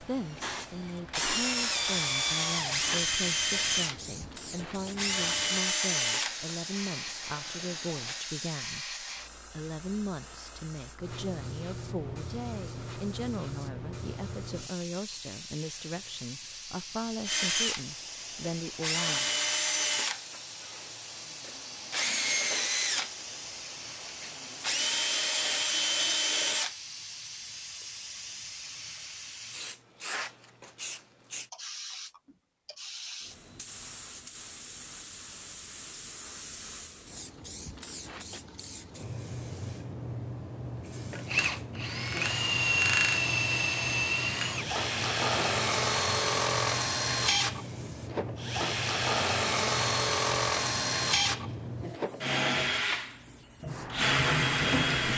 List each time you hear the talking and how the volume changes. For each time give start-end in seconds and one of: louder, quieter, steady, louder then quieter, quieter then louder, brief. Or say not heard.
0.0-19.4 steady.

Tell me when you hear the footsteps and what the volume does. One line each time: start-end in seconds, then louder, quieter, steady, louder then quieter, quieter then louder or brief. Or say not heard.
not heard.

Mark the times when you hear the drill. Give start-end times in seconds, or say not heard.
0.0-8.2, 17.2-26.8, 41.1-55.1.